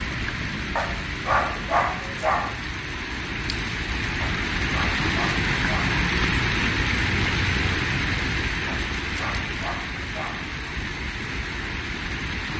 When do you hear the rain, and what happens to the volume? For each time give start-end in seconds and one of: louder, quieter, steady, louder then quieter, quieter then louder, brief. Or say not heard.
0.0-12.5 louder then quieter.